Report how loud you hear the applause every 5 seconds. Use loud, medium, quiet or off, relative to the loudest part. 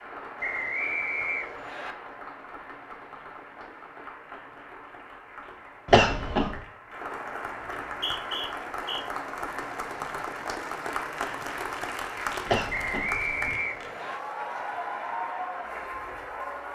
medium, loud, loud, loud.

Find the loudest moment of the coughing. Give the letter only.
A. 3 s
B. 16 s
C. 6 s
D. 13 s
C.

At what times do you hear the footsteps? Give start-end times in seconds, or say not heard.
not heard.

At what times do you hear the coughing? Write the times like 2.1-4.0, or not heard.
5.8-6.6, 12.4-13.6.